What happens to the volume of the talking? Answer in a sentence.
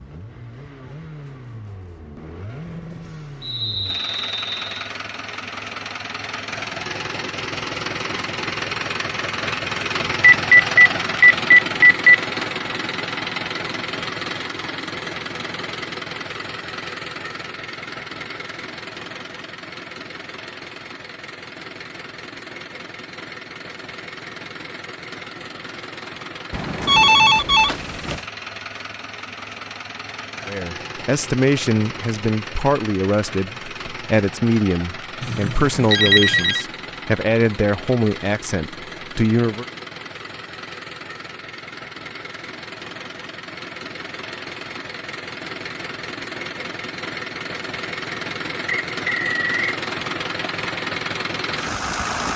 The volume of the talking stays about the same.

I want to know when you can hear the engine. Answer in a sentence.
The engine can be heard from 0.0 to 52.3 s.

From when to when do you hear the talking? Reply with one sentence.
The talking can be heard from 30.4 to 39.6 s.